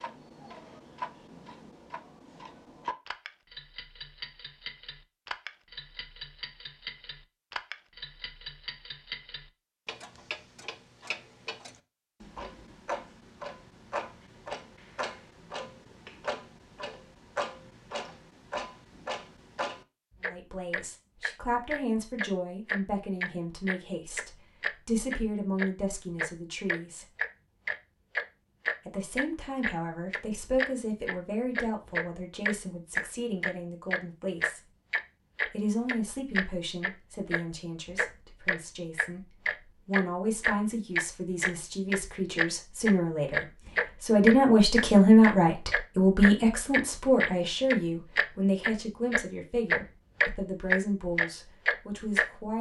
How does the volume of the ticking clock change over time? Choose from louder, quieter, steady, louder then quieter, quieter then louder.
louder.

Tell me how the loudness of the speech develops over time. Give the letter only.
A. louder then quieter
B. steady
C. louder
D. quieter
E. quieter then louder
A.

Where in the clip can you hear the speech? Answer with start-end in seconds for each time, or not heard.
20.2-27.1, 28.9-34.6, 35.5-52.5.